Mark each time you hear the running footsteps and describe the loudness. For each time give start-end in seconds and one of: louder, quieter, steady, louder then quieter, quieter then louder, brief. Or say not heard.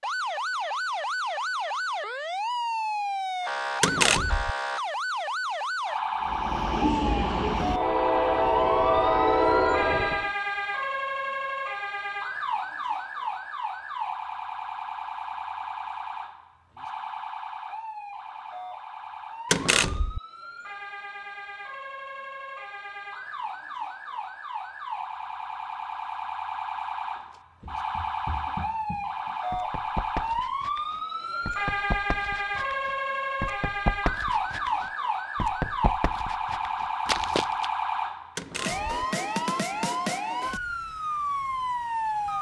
27.6-37.7 louder.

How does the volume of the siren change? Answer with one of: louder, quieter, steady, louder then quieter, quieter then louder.
quieter then louder.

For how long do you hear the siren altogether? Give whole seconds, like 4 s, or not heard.
42 s.